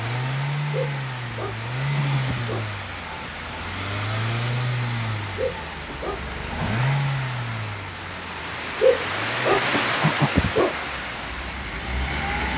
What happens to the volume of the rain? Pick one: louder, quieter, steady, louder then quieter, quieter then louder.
louder.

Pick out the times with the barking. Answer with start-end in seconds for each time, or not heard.
0.7-2.6, 5.3-6.8, 8.8-10.8.